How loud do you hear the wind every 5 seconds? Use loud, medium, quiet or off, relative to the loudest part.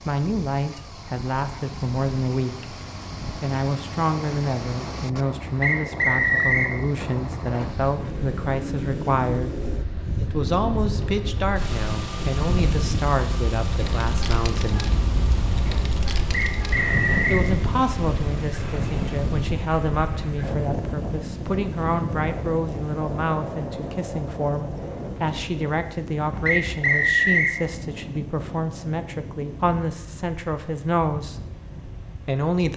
medium, medium, loud, loud, loud, medium, quiet.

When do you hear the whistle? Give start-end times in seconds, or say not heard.
5.6-6.8, 16.3-17.4, 26.4-27.6.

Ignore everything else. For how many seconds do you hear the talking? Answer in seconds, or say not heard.
29 s.